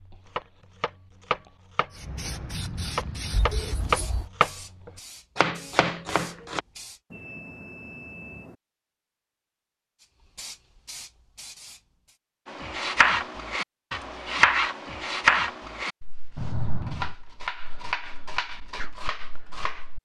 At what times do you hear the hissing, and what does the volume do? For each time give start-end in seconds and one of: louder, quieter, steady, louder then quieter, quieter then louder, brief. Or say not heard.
1.9-7.0 quieter
10.0-12.2 brief.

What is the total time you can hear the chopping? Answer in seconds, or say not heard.
14 s.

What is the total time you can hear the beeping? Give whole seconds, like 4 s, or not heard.
3 s.